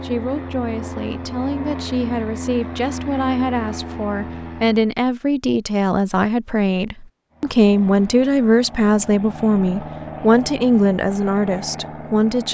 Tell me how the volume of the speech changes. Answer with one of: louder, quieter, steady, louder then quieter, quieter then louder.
louder.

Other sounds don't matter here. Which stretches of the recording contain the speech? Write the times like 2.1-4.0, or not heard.
0.0-12.4.